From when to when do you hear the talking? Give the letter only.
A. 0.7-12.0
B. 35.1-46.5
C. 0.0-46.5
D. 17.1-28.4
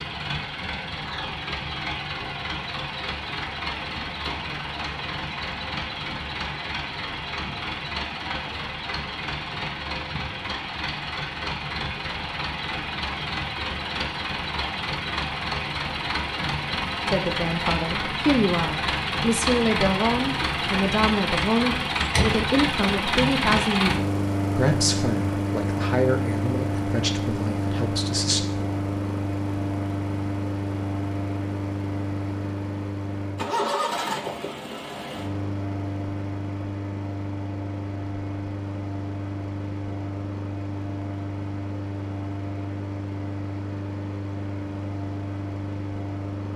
D.